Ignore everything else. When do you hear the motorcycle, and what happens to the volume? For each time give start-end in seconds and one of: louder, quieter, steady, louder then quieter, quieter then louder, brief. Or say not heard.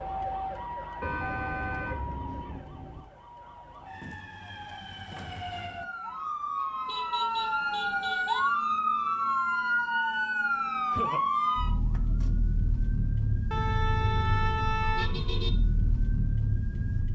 not heard.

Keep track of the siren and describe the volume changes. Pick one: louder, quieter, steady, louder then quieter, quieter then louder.
louder then quieter.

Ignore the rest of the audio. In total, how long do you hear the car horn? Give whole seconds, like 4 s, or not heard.
6 s.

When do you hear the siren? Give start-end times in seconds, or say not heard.
0.0-17.1.